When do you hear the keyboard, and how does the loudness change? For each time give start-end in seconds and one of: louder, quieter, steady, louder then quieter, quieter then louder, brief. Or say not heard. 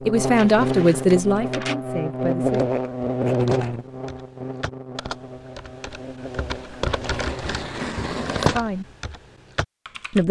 2.7-10.2 louder.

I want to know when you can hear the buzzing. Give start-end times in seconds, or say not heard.
0.0-7.6.